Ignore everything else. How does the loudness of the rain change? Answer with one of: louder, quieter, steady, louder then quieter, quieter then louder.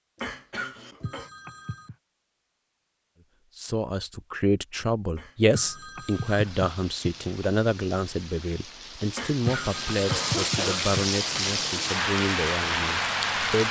louder.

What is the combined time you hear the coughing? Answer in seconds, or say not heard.
4 s.